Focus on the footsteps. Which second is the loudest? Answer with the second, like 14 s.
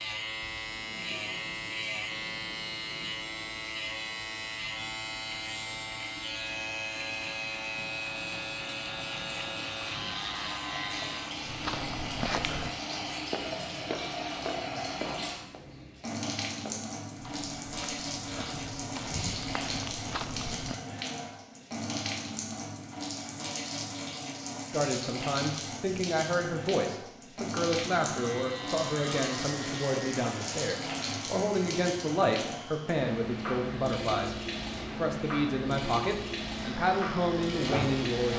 12 s.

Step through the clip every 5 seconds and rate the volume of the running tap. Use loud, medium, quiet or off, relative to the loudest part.
quiet, medium, loud, loud, loud, loud, loud, loud.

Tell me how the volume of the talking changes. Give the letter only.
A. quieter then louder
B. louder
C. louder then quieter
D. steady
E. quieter
D.